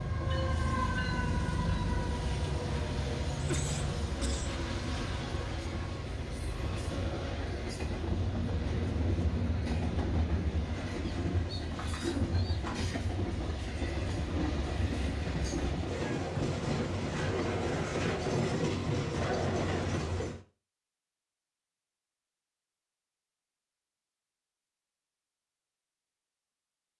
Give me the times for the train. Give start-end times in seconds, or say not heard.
0.0-20.4.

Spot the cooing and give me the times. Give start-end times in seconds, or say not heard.
11.0-12.8.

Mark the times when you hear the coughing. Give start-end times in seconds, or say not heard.
3.4-4.6.